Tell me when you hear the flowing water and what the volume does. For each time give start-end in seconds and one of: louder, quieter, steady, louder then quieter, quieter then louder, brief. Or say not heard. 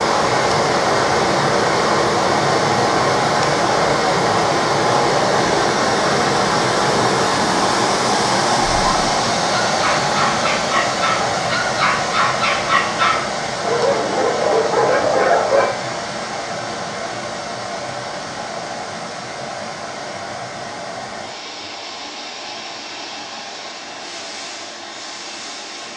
0.0-25.9 quieter.